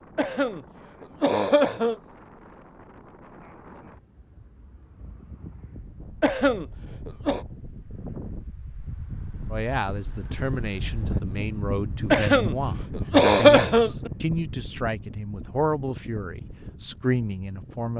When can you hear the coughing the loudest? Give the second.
13 s.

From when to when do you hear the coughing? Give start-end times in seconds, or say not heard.
0.1-1.9, 6.2-7.5, 12.1-14.1.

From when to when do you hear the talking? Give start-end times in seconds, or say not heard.
9.5-17.9.